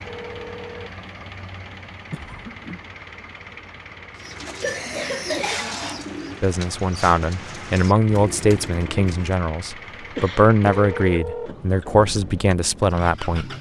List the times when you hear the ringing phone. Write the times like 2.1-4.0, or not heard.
0.1-0.9, 10.8-11.5.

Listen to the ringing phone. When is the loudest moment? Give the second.
11 s.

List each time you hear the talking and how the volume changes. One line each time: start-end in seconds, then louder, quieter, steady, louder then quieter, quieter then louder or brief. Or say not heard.
6.4-13.5 steady.